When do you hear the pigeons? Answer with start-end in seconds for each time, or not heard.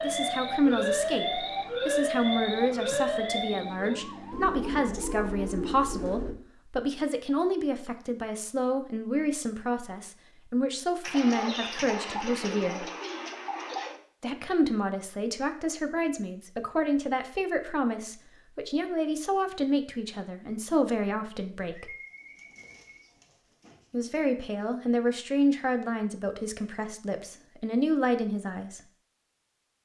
4.3-6.3, 11.0-14.0, 21.8-24.2.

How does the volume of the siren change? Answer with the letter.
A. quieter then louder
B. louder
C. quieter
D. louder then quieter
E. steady
C.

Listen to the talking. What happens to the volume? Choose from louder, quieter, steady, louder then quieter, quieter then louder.
steady.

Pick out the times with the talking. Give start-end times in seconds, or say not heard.
0.0-12.9, 14.2-21.9, 23.9-28.8.